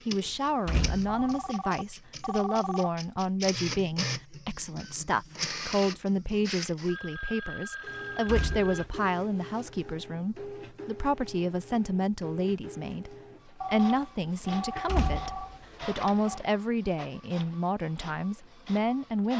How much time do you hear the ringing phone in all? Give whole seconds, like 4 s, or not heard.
7 s.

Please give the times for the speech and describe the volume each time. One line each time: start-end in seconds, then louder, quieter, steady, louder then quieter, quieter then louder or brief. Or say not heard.
0.1-19.3 steady.